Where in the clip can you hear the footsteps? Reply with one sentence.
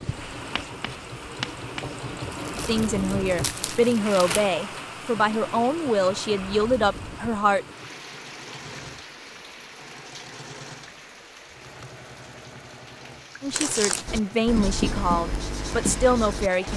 You can't hear the footsteps here.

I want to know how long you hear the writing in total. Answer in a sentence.
You can hear the writing for 5 seconds altogether.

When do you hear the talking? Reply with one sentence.
The talking can be heard from 2.5 to 7.7 s and from 13.4 to 16.7 s.